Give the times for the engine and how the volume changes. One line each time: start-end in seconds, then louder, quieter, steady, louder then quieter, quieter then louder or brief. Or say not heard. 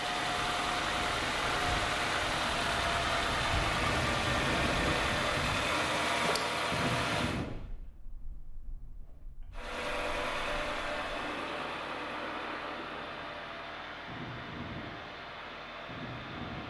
0.0-7.5 steady
9.5-16.6 quieter.